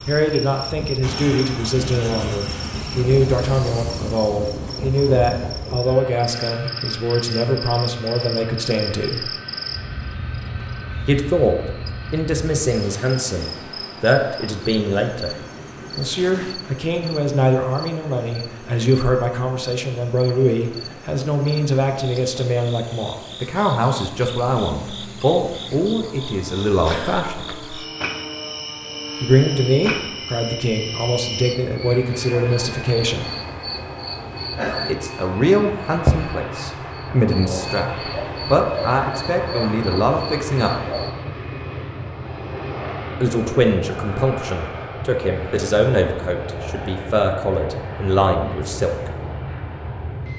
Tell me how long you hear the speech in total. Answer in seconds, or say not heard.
41 s.